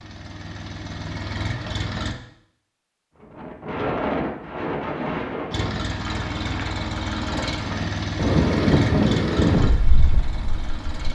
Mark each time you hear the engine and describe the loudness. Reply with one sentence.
You can hear the engine briefly from 0.0 to 2.1 s; and from 5.5 to 11.1 s, getting quieter.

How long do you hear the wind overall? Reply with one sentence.
The wind can be heard for 8 seconds in total.